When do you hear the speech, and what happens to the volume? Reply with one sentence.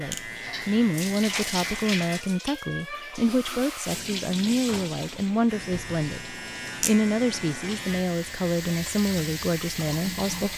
The speech can be heard from 0.0 to 10.5 s, at a steady volume.